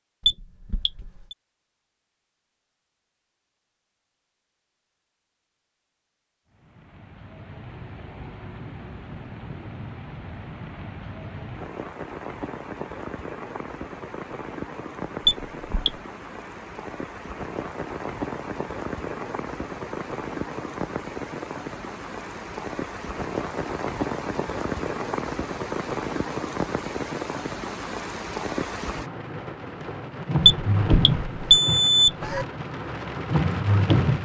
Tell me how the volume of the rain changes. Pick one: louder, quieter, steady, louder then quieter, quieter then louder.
louder.